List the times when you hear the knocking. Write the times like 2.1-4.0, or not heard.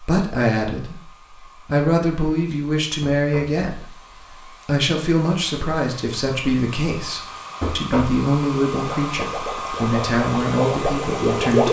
3.0-3.6, 7.6-8.2.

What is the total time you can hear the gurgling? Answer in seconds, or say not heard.
3 s.